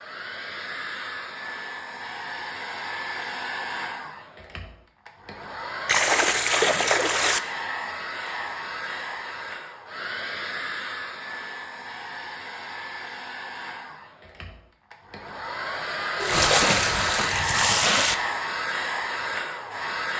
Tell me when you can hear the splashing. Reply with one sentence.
You can hear the splashing from 5.8 to 7.4 s and from 16.2 to 18.1 s.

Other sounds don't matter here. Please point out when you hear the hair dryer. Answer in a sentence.
The hair dryer can be heard from 0.0 to 20.1 s.